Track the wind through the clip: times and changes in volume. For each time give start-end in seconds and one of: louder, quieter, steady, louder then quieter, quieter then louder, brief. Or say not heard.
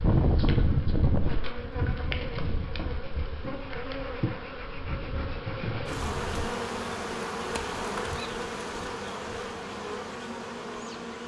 0.0-6.5 quieter then louder.